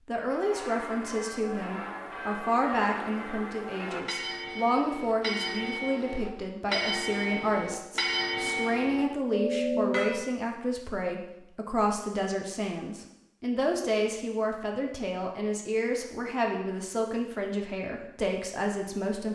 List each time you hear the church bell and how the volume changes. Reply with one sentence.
The church bell can be heard from 0.3 to 10.2 s, getting louder.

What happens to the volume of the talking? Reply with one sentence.
The loudness of the talking stays about the same.